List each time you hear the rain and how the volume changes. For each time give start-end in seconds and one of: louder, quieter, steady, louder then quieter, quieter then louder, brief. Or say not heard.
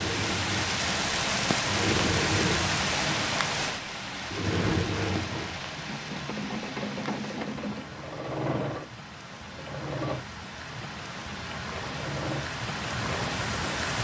0.0-14.0 quieter then louder.